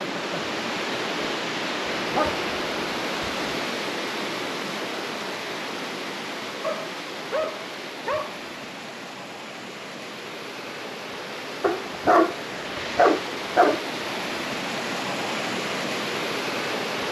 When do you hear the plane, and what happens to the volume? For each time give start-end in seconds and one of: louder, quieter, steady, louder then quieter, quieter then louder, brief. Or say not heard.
not heard.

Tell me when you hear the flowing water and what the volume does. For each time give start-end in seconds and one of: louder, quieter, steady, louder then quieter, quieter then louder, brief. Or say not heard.
0.0-17.0 quieter then louder.